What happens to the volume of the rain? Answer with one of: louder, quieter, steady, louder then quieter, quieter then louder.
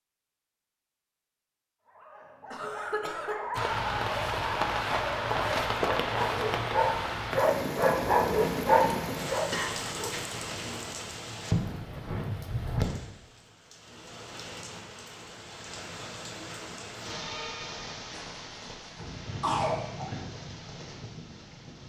quieter.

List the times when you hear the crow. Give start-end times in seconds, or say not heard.
not heard.